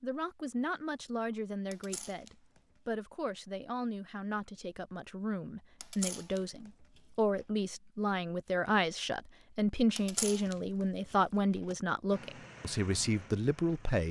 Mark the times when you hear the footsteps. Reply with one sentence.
You can't hear the footsteps here.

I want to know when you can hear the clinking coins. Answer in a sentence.
The clinking coins can be heard from 1.7 to 2.6 s, from 5.8 to 7.5 s and from 9.9 to 11.8 s.